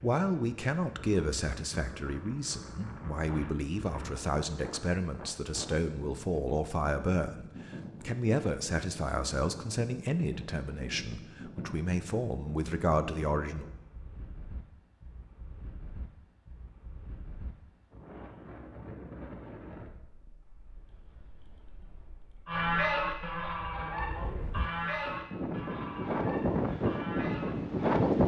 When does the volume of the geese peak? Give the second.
23 s.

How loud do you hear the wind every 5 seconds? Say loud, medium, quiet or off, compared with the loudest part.
quiet, quiet, quiet, quiet, quiet, loud.